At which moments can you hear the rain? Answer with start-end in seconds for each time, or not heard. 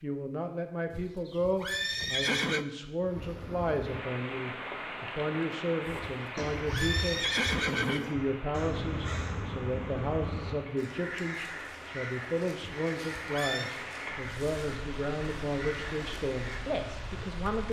3.0-17.6.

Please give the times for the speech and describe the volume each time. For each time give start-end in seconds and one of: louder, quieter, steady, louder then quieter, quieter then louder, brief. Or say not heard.
0.0-17.6 steady.